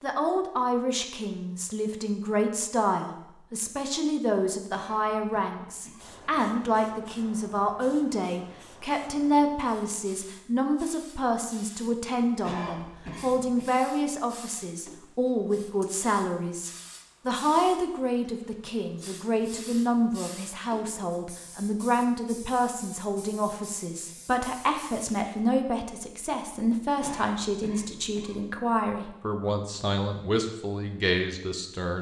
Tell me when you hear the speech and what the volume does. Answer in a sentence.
The speech can be heard from 0.0 to 31.9 s, at a steady volume.